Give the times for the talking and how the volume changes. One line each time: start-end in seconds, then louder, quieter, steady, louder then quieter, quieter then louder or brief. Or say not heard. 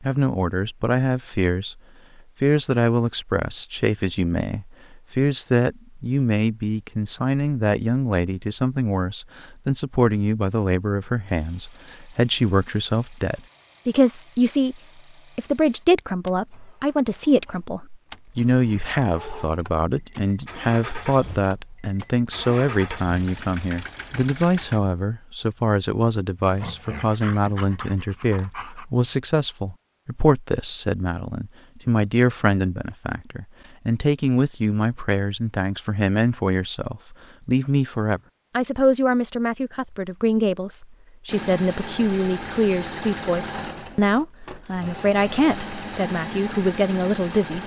0.0-1.8 brief
2.4-47.6 steady.